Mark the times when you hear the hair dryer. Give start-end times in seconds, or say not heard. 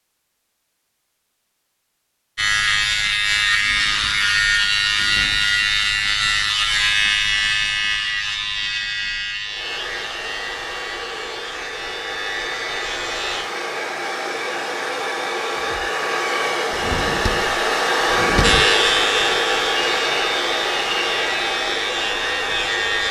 9.4-23.0.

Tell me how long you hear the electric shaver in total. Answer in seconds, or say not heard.
16 s.